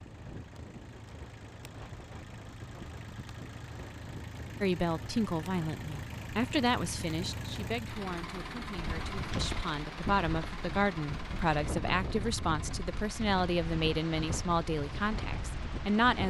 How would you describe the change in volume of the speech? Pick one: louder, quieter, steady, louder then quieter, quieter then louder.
quieter then louder.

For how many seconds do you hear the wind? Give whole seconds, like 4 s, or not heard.
16 s.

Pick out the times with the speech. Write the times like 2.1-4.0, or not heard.
4.6-16.2.